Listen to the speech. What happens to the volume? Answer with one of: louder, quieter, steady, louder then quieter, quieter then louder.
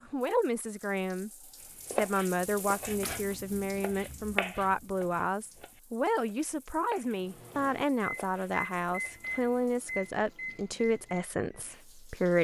steady.